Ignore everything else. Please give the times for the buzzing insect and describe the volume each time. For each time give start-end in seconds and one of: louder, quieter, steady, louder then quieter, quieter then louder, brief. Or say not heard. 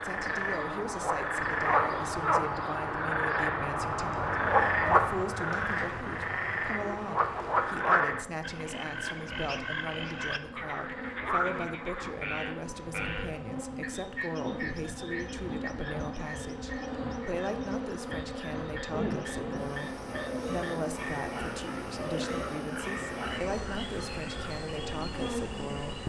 0.0-26.0 louder.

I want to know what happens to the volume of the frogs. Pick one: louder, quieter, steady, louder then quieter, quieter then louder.
quieter.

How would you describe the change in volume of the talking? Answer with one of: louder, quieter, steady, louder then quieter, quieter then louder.
steady.